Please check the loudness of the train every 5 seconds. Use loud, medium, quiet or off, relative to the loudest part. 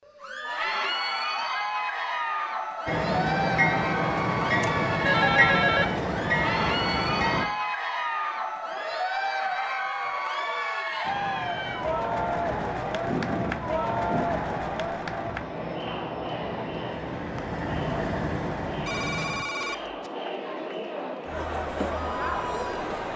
loud, loud, medium, medium, off.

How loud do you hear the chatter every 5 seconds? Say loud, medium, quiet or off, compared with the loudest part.
loud, loud, loud, medium, loud.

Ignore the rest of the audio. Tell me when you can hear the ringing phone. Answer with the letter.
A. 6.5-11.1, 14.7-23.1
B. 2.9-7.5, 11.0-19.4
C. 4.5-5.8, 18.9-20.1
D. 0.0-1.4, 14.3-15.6
C.